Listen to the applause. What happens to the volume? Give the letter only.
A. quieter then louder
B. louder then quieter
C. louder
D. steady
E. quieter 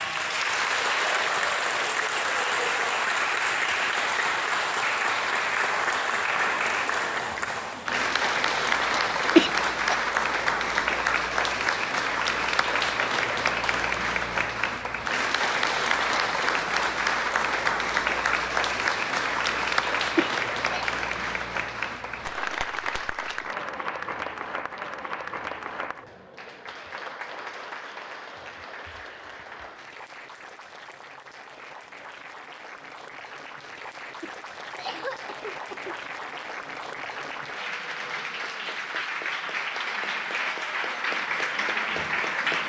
A.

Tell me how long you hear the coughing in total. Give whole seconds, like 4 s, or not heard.
3 s.